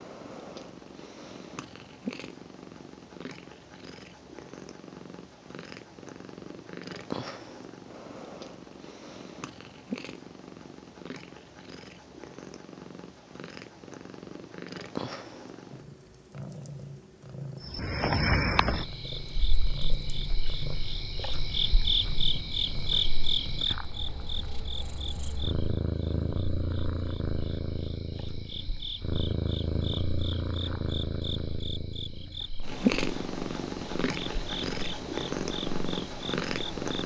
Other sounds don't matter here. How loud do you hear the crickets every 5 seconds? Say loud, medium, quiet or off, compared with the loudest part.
off, off, off, loud, loud, quiet, medium, medium.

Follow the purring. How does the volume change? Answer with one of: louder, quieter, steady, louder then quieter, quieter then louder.
louder.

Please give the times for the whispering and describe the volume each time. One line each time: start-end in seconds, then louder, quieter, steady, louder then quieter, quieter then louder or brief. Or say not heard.
not heard.